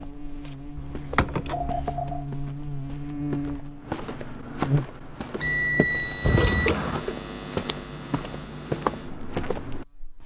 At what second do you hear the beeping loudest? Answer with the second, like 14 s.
6 s.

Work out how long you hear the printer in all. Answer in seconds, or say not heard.
not heard.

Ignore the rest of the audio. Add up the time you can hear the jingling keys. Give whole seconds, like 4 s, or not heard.
2 s.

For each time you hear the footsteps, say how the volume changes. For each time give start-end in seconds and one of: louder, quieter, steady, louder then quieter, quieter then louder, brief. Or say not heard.
0.0-10.2 louder.